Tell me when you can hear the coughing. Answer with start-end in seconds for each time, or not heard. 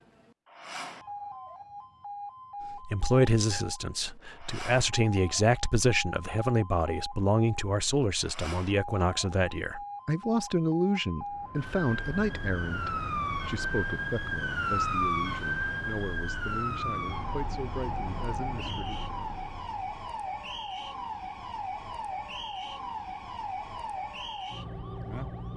not heard.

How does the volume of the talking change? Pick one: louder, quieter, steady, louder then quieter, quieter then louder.
quieter.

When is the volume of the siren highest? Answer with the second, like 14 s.
15 s.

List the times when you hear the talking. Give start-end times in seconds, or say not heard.
2.7-19.1.